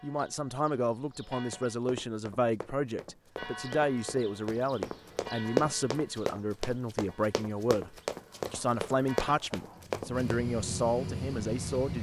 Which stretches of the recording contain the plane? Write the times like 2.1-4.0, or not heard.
8.1-11.9.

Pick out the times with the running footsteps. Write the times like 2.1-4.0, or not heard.
1.4-10.4.